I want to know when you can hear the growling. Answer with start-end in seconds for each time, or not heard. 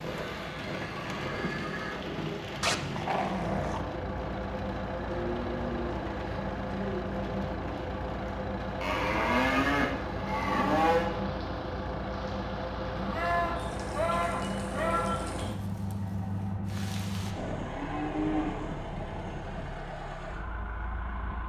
2.6-3.9.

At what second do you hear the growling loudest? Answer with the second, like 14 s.
3 s.